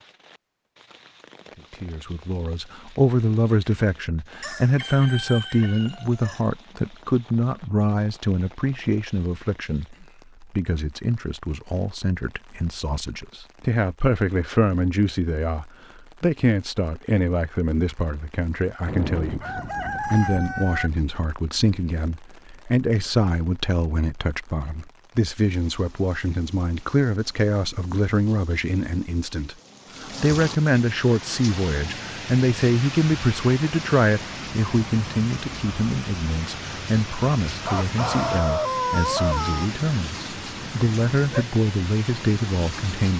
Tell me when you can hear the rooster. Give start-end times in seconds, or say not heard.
4.4-6.4, 18.9-20.9, 37.6-39.6.